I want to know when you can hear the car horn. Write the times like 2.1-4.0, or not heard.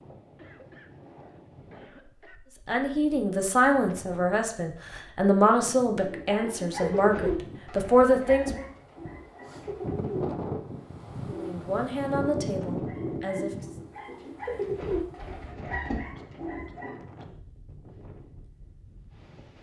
not heard.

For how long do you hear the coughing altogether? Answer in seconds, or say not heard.
3 s.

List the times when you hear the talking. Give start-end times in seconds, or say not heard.
2.6-8.7, 11.2-13.5.